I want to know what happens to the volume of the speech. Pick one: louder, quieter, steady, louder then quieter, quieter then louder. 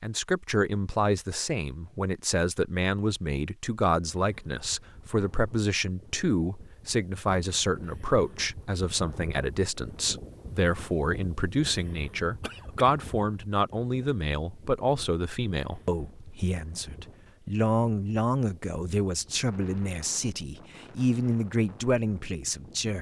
steady.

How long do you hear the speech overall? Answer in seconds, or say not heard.
23 s.